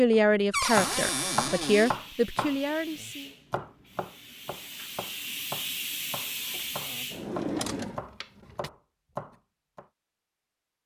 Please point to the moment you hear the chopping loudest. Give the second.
1 s.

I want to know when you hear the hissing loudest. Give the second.
6 s.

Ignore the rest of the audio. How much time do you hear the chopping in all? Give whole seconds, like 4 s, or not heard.
10 s.